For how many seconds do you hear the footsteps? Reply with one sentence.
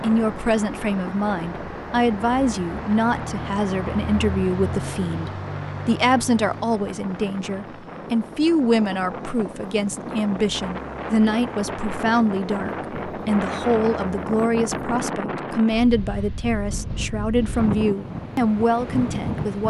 The footsteps can't be heard in this clip.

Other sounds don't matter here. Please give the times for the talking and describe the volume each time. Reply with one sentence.
You can hear the talking from 0.0 to 19.6 s, at a steady volume.